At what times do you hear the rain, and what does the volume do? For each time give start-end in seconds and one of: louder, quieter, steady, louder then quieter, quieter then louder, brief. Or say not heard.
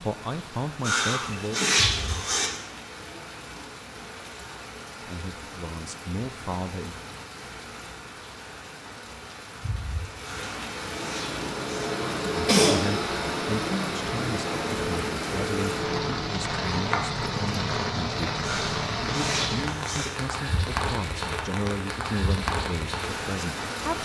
0.0-24.0 louder.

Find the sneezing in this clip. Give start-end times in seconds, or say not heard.
0.8-2.5, 10.2-12.8, 18.4-20.1.